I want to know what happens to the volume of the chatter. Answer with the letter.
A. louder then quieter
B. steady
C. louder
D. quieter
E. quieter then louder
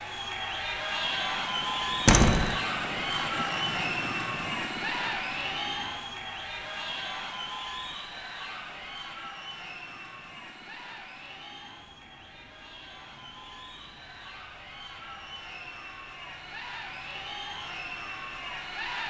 E.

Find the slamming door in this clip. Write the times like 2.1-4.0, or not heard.
2.0-2.5.